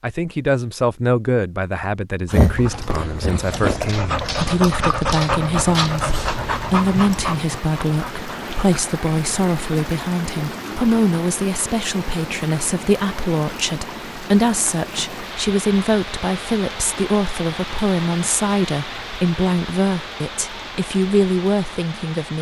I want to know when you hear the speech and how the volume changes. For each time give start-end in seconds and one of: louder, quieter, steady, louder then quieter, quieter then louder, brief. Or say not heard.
0.0-22.3 steady.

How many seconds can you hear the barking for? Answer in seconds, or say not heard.
6 s.